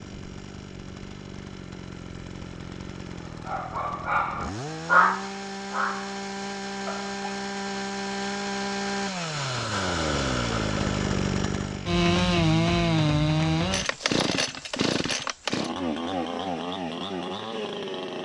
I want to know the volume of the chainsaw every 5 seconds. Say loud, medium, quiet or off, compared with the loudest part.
quiet, medium, loud, medium.